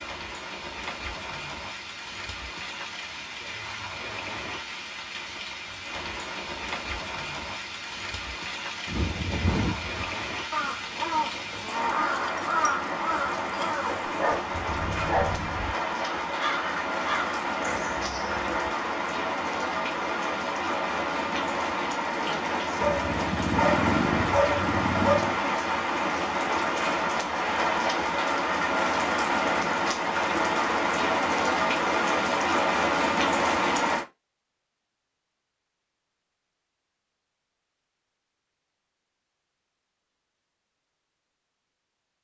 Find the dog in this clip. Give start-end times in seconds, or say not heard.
13.8-15.4, 22.8-25.4.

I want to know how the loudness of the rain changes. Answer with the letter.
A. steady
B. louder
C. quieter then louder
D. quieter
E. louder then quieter
B.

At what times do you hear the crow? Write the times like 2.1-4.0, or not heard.
8.8-18.7.